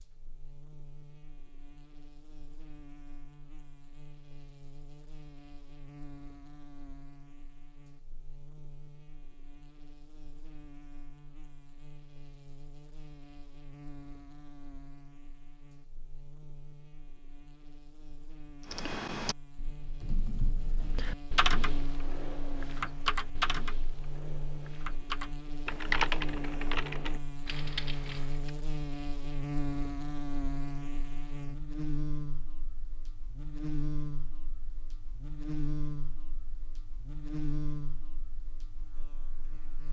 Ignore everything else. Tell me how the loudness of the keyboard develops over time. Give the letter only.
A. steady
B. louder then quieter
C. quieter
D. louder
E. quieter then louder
B.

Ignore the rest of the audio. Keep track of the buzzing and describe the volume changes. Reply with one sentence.
The volume of the buzzing goes up.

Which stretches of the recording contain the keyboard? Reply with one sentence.
The keyboard can be heard from 18.6 to 28.5 s.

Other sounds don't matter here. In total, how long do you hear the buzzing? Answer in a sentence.
You can hear the buzzing for 40 seconds altogether.